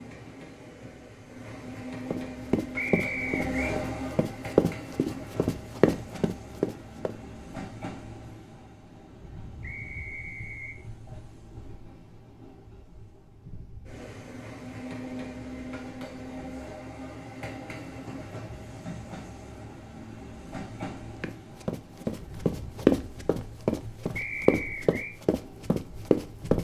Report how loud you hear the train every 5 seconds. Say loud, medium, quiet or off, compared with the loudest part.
loud, medium, medium, loud, medium, medium.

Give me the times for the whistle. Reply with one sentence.
You can hear the whistle from 2.8 to 3.8 s, from 9.6 to 10.8 s and from 24.1 to 25.1 s.